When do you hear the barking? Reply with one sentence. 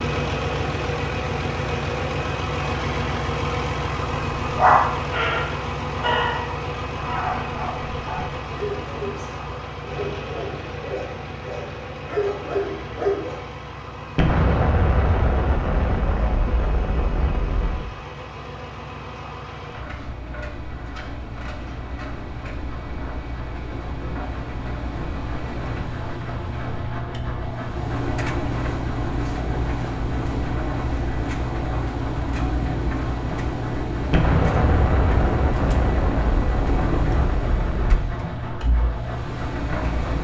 You can hear the barking from 4.5 to 13.3 s.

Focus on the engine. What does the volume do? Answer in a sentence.
The loudness of the engine goes down, then up.